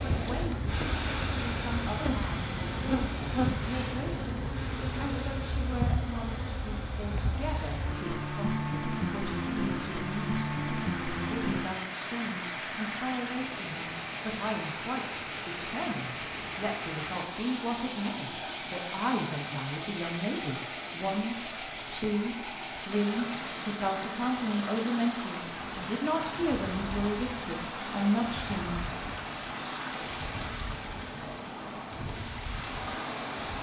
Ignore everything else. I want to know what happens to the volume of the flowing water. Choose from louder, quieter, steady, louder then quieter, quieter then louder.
steady.